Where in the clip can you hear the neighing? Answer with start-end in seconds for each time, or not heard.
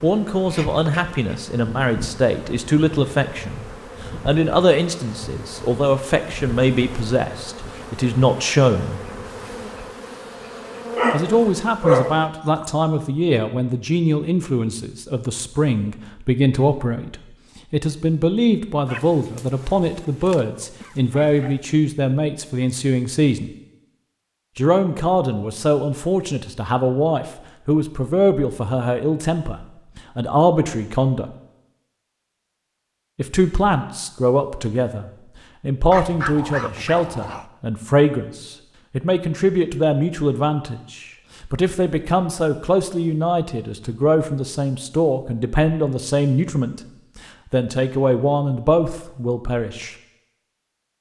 not heard.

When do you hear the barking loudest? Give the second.
12 s.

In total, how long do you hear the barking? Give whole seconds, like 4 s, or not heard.
6 s.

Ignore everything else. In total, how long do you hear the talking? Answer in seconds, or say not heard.
44 s.